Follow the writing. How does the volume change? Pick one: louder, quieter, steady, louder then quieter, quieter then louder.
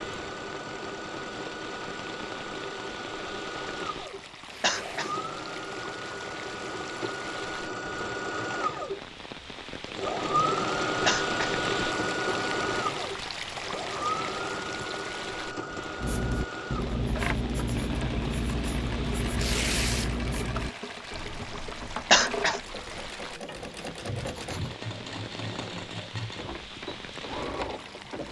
quieter.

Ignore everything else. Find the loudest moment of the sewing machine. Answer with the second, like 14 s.
11 s.